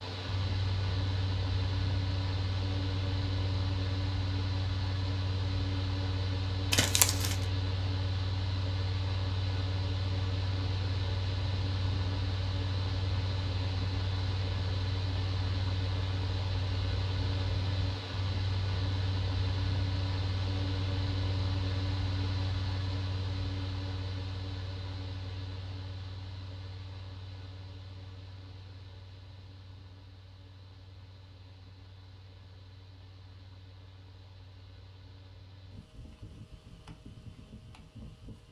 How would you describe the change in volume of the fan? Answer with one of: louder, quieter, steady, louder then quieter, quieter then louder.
quieter.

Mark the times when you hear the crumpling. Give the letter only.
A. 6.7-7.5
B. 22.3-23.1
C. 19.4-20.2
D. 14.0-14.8
A.